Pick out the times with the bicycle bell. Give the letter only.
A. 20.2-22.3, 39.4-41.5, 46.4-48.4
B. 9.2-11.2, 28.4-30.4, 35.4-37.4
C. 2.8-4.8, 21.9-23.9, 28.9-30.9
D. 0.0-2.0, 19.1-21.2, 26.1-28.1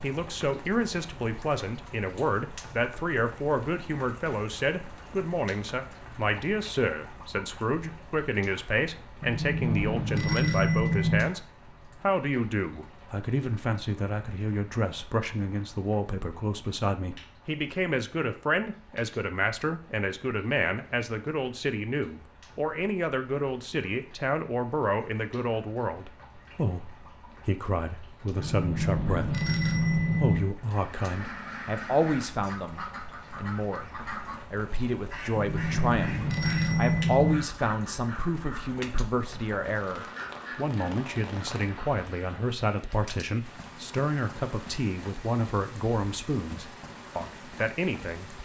B.